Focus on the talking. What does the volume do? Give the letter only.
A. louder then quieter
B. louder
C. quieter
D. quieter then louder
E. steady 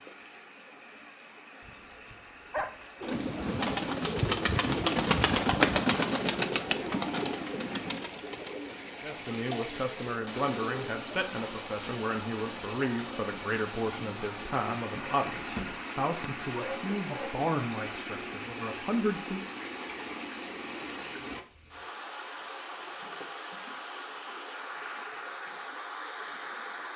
E.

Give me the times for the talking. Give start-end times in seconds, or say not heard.
9.0-19.4.